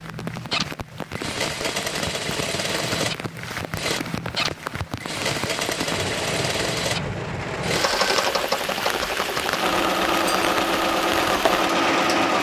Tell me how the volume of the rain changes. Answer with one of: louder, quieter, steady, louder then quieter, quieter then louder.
louder.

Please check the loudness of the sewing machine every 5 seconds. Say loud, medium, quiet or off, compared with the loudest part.
medium, loud, loud.